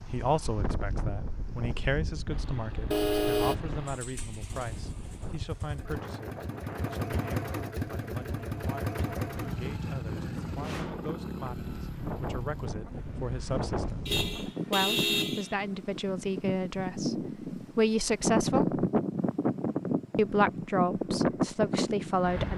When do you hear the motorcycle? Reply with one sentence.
You can hear the motorcycle from 2.3 to 12.7 s.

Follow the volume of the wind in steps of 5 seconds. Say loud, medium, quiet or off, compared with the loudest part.
medium, quiet, medium, loud, loud.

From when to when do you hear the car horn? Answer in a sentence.
You can hear the car horn from 2.9 to 3.5 s and from 14.1 to 15.6 s.